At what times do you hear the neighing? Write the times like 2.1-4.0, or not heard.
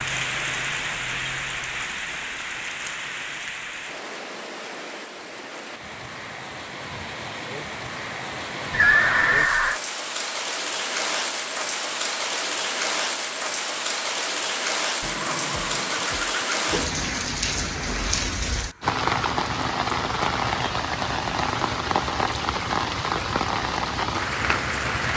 8.7-9.8, 15.0-16.8.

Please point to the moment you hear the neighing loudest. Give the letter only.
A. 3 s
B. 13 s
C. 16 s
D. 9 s
D.